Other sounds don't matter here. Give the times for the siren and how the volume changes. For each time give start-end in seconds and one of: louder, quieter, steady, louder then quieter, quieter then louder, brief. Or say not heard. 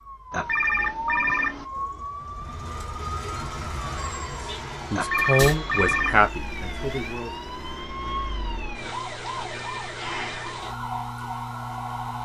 0.0-12.2 steady.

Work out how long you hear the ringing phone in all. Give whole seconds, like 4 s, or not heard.
4 s.